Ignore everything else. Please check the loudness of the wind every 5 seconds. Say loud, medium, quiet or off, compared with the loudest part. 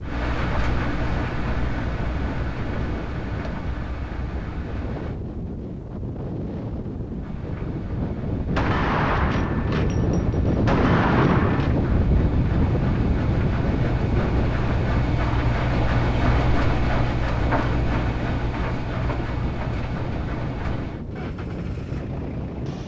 medium, medium, loud, medium, medium.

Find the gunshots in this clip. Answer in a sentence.
You can hear the gunshots from 8.6 to 11.8 s.